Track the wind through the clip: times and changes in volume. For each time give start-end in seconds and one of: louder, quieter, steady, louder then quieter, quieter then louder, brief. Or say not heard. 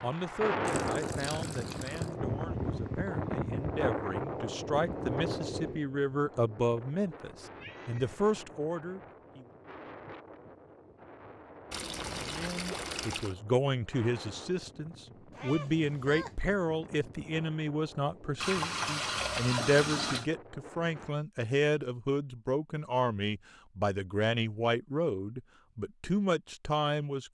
0.0-21.1 quieter.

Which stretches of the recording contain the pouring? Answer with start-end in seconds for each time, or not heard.
0.7-2.1, 11.7-13.3, 18.4-20.3.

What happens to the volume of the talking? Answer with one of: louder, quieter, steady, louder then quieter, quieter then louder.
louder.